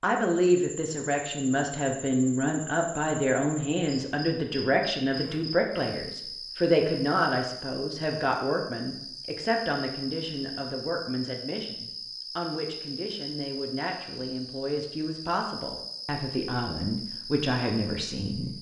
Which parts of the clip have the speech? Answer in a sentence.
The speech can be heard from 0.0 to 18.5 s.